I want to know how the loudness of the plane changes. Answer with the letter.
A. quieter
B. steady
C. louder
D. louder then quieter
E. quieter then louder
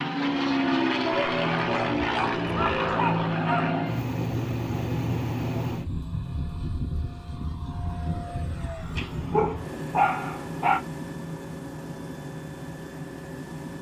A.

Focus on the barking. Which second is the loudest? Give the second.
10 s.